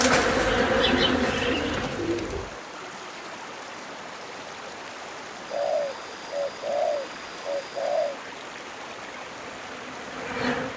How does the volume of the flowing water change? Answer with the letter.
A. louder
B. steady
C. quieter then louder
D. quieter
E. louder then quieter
B.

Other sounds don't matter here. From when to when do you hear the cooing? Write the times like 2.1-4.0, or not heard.
0.1-2.6, 5.5-8.2.